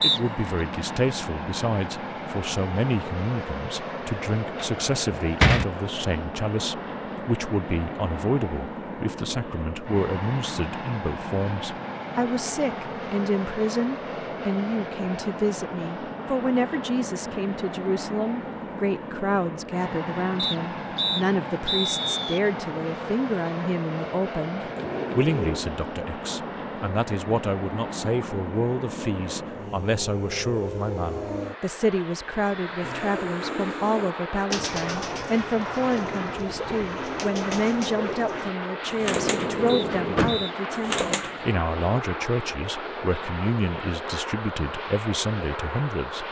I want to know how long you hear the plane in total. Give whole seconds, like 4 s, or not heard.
46 s.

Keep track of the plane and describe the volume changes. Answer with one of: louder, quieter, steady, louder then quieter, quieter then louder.
steady.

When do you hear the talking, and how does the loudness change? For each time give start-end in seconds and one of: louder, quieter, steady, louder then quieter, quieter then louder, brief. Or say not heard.
0.0-46.2 steady.